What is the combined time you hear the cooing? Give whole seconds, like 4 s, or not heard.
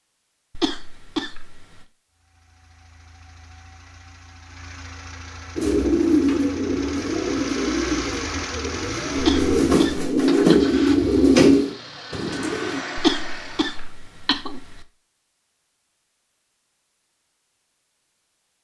7 s.